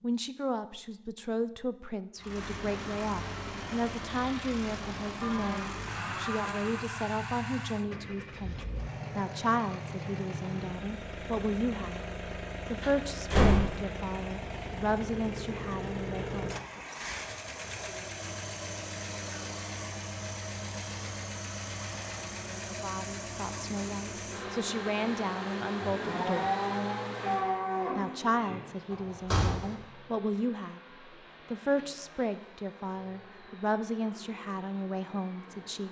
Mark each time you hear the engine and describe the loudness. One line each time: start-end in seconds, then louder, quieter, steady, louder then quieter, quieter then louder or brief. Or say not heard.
2.1-35.8 quieter.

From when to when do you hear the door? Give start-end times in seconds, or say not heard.
12.8-13.7, 28.9-29.8.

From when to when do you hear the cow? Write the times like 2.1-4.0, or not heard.
5.2-6.8, 25.8-28.6.